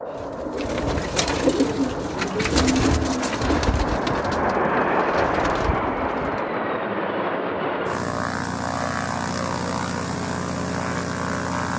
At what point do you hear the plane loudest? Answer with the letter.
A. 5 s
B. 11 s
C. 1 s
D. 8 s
A.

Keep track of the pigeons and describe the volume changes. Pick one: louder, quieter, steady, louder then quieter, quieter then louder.
quieter.